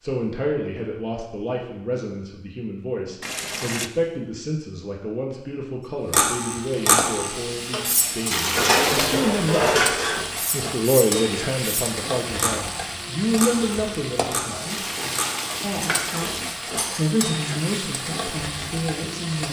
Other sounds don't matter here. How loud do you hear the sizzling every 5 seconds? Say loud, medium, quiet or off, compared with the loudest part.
off, loud, loud, loud.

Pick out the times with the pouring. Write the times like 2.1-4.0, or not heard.
3.2-3.9, 8.3-9.2, 14.7-16.6.